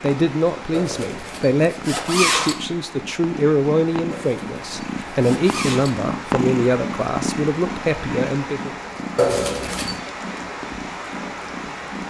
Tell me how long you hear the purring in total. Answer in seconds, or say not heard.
12 s.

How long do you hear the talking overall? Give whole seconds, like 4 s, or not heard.
9 s.